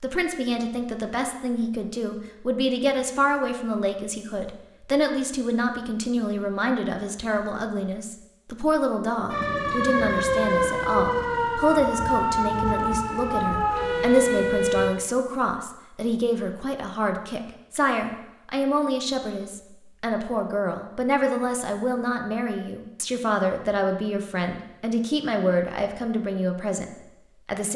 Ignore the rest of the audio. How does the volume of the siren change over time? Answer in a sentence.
The volume of the siren stays about the same.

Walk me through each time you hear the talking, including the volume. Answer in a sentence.
The talking can be heard from 0.0 to 27.7 s, at a steady volume.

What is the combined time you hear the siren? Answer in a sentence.
The siren can be heard for 6 seconds in total.